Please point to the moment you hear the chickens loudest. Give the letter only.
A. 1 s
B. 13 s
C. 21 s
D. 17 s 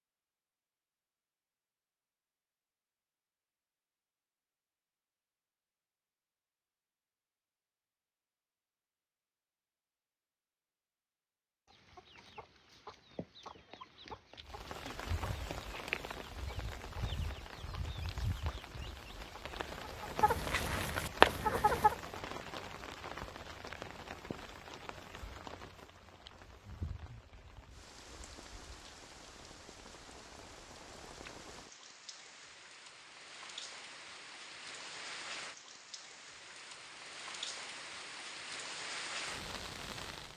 C.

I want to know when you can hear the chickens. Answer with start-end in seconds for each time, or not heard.
11.7-21.9.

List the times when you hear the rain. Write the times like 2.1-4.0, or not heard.
14.4-40.3.